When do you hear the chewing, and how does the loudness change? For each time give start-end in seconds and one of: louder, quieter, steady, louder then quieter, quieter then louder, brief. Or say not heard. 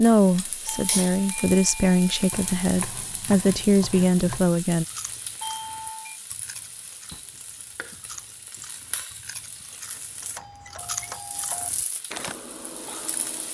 4.8-13.5 louder.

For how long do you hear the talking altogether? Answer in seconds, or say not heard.
5 s.